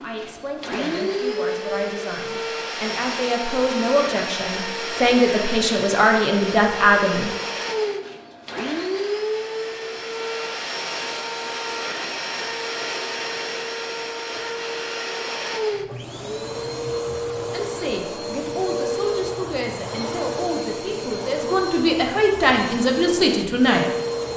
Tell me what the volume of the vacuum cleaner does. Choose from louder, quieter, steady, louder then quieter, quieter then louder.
steady.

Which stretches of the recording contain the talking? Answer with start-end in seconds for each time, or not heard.
0.0-7.3, 17.5-24.3.